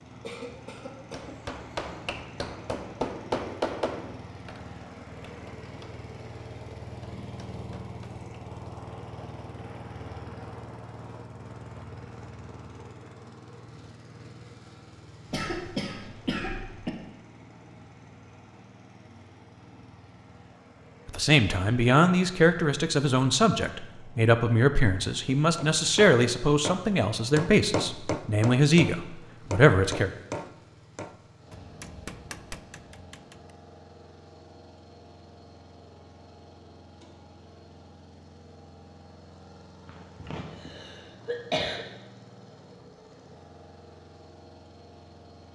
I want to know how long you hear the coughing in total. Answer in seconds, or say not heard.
5 s.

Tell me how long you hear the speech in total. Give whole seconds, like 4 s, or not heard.
9 s.